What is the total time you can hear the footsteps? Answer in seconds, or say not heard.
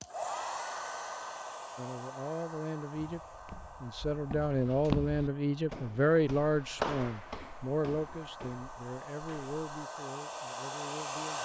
7 s.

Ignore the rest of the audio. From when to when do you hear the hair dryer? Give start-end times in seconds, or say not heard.
0.0-11.4.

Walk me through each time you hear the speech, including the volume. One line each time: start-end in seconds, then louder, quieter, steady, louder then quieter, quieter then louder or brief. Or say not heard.
1.8-3.2 brief
3.8-11.4 quieter.